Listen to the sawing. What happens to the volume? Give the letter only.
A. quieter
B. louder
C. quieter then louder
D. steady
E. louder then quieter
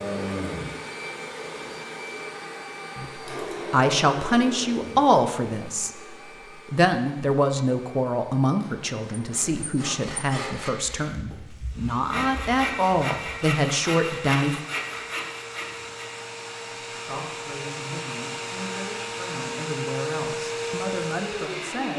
C.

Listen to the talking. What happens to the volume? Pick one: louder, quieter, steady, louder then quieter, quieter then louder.
quieter.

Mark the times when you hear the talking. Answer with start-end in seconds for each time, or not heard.
3.0-14.6, 16.9-21.9.